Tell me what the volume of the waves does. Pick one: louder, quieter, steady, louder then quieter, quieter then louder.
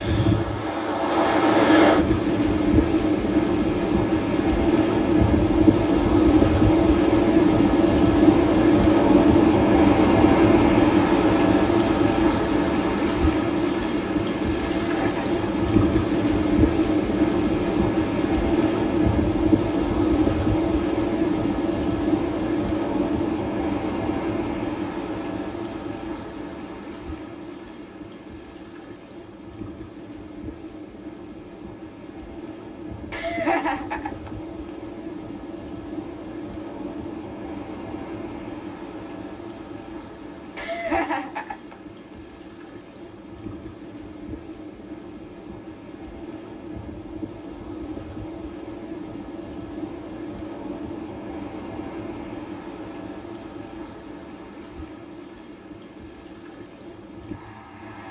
quieter.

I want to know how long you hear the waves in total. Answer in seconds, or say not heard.
58 s.